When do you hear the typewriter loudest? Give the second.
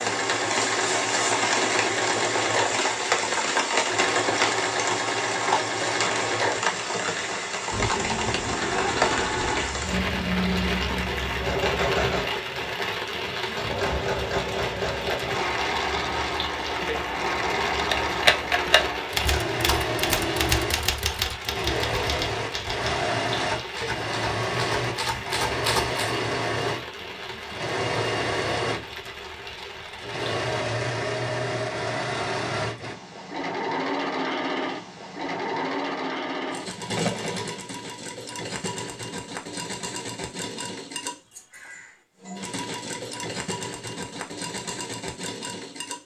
18 s.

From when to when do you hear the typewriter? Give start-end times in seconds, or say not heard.
17.8-26.1.